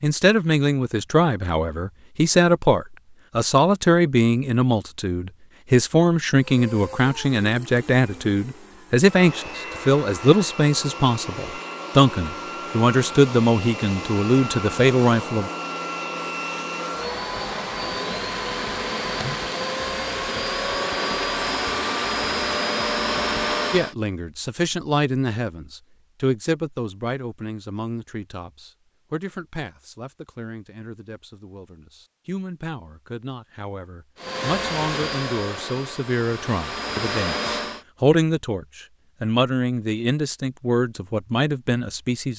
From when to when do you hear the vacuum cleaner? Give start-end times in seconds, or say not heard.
6.3-23.9, 34.1-37.9.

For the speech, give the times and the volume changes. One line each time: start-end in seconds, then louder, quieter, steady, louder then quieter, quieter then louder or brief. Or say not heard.
0.0-15.5 steady
23.7-42.3 quieter then louder.